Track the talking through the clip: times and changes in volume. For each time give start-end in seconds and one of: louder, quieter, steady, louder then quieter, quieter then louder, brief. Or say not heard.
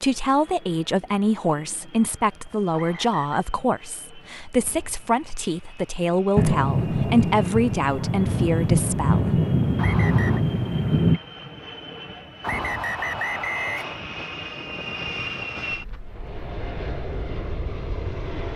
0.0-9.4 steady.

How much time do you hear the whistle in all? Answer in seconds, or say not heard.
3 s.